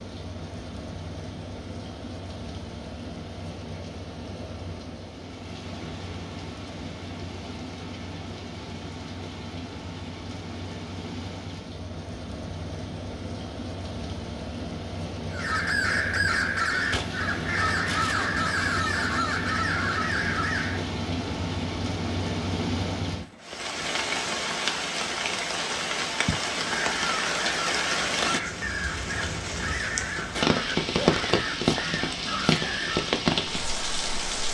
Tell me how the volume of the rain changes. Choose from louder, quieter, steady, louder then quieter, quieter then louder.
louder.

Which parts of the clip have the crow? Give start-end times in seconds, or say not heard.
15.3-20.9, 26.8-33.1.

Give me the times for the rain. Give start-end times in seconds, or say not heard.
0.0-34.4.